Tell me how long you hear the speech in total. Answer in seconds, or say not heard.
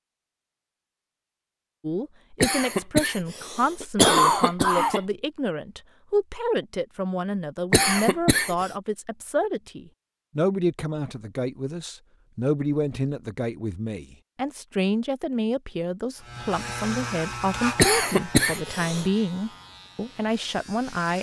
19 s.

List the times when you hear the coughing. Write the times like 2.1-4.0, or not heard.
2.4-5.0, 7.7-8.7, 17.8-19.1.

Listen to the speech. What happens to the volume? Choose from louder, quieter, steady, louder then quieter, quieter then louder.
steady.